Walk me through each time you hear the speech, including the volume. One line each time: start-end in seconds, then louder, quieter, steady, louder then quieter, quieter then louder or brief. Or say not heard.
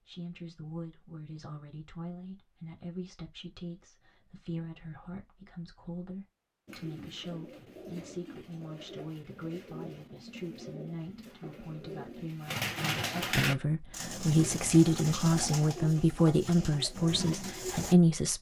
0.1-18.3 louder.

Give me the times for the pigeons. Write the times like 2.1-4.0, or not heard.
6.7-17.9.